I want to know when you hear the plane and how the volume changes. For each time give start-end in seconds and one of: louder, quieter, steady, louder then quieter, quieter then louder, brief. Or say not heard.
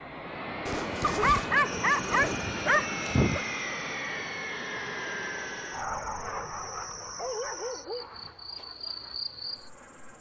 0.0-10.1 quieter.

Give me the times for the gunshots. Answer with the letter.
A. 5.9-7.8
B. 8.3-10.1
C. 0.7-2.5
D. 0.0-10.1
C.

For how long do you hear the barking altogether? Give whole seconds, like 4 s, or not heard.
4 s.